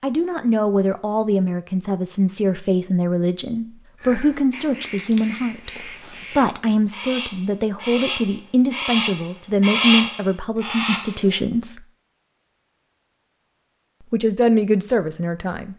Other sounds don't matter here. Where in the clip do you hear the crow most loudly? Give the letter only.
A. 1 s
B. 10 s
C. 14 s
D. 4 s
B.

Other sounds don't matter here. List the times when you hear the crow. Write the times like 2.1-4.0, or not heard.
4.0-11.4.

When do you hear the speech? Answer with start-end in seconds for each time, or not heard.
0.0-5.7, 6.3-11.8, 14.1-15.7.